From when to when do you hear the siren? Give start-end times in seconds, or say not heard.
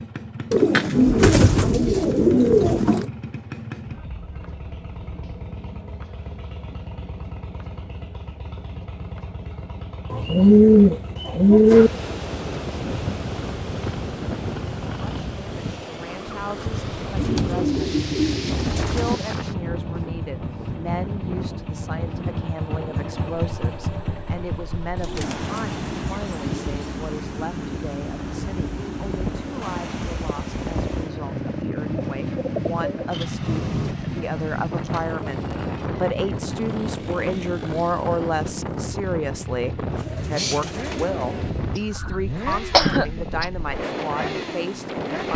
not heard.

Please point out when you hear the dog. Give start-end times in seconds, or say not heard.
not heard.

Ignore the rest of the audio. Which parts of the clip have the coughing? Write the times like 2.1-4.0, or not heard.
41.8-43.5.